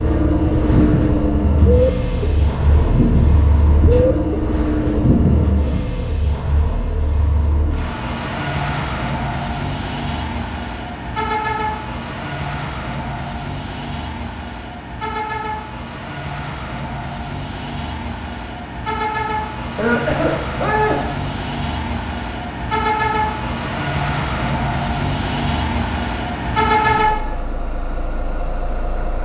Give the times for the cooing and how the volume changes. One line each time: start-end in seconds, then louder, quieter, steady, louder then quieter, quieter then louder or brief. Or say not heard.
0.4-5.8 steady.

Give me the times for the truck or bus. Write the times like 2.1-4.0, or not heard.
0.0-29.2.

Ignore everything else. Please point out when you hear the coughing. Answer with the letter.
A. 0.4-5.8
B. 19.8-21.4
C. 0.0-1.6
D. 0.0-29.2
B.